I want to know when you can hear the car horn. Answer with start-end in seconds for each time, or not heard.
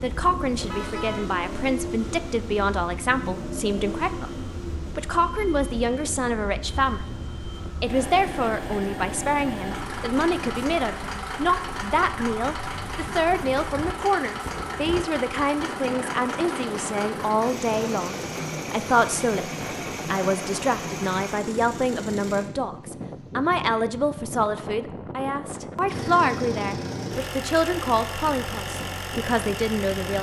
0.7-1.4.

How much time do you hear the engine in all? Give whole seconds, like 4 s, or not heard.
27 s.